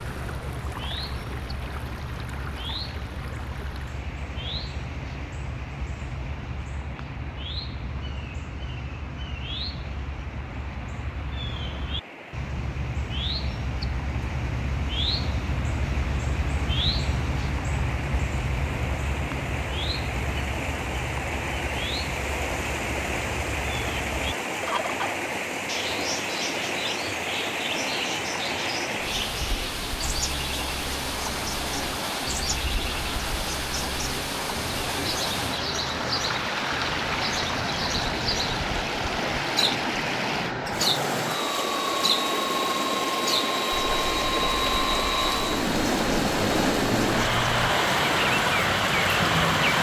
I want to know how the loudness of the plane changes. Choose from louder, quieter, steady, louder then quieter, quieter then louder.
louder.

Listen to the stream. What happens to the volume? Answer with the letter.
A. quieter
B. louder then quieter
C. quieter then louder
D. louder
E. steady
D.